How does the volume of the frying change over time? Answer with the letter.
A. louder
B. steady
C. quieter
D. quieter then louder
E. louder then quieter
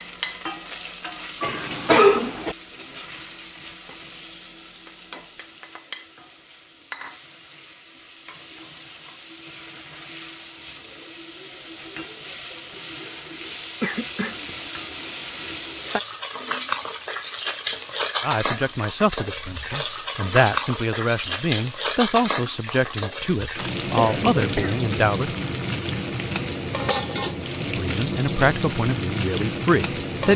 A.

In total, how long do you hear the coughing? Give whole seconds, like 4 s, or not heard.
3 s.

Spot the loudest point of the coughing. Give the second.
2 s.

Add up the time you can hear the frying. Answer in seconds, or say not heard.
30 s.